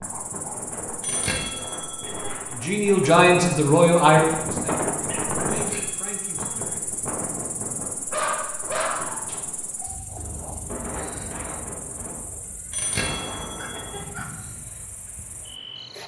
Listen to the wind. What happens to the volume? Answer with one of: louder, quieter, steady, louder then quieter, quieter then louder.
louder then quieter.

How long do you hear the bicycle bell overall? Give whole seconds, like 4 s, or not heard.
4 s.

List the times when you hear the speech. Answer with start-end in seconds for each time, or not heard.
2.5-7.0.